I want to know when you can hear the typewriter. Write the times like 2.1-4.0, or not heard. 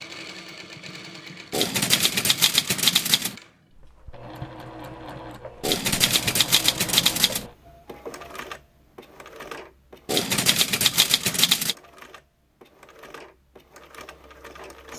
1.5-3.4, 5.6-7.5, 10.1-11.8.